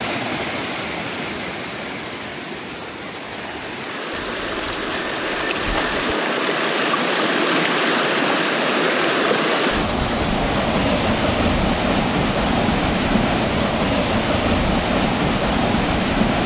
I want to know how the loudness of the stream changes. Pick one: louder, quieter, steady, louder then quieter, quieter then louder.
louder.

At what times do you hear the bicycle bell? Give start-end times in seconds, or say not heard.
4.1-6.2.